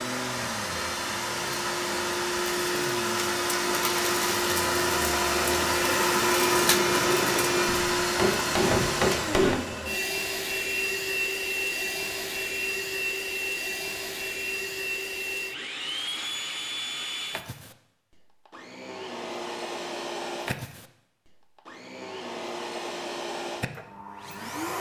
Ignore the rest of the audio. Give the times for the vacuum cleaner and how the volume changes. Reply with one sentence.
You can hear the vacuum cleaner from 0.0 to 24.7 s, getting quieter.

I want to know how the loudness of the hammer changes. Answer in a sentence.
The volume of the hammer goes up.